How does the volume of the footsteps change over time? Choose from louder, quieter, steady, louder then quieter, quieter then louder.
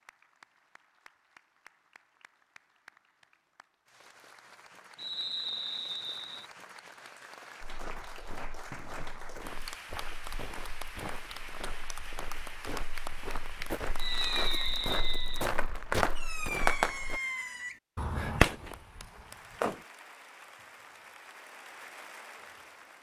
louder.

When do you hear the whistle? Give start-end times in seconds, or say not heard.
5.0-6.5, 13.9-15.5.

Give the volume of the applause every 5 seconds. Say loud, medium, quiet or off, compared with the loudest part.
quiet, loud, loud, medium, medium.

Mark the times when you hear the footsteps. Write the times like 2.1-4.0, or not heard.
7.6-17.2.